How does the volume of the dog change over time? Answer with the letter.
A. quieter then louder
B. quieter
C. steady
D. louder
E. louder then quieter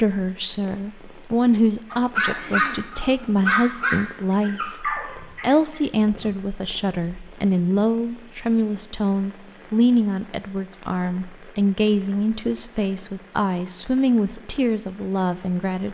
B.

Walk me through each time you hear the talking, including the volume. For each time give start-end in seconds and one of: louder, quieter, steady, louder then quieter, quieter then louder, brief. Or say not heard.
0.0-15.8 steady.